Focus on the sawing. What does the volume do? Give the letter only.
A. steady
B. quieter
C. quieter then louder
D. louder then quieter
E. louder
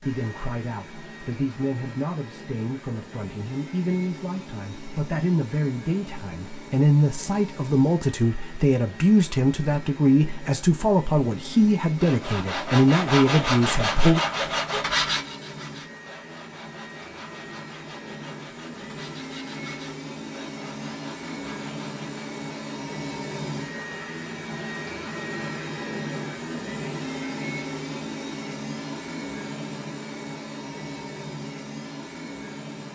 B.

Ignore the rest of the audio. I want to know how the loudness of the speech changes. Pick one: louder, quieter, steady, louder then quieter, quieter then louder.
louder.